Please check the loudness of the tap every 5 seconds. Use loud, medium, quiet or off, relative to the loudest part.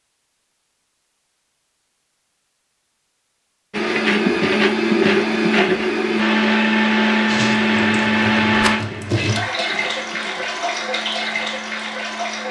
off, loud, loud.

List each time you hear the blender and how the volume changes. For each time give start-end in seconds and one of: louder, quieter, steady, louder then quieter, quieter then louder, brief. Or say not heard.
3.7-12.4 quieter.